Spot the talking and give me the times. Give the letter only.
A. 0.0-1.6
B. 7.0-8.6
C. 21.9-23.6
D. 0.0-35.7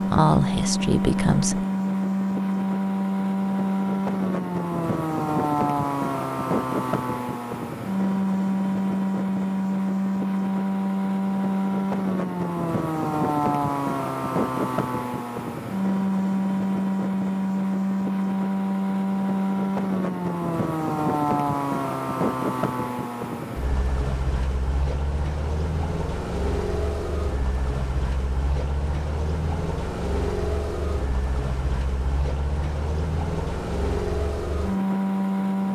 A.